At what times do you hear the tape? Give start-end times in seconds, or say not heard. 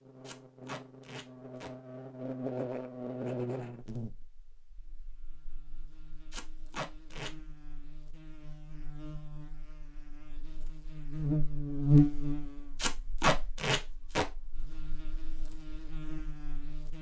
0.2-1.7, 6.3-7.3, 12.8-14.2.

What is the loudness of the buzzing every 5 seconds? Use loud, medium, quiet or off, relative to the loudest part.
medium, quiet, loud, quiet.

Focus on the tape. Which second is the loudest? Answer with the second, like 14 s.
13 s.